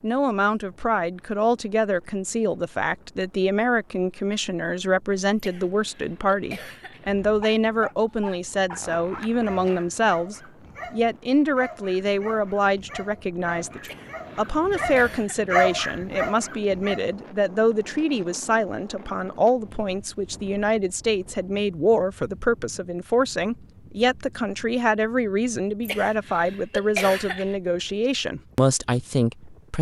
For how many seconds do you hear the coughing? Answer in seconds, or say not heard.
5 s.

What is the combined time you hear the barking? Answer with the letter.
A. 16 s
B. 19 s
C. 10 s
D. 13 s
C.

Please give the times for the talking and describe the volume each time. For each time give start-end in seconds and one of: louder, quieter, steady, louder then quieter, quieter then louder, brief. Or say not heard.
0.0-29.7 steady.